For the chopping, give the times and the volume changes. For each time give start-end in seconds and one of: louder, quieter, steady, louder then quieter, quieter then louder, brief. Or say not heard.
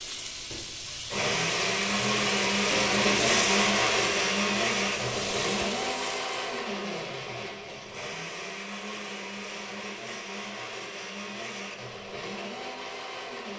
not heard.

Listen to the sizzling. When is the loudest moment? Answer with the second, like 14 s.
3 s.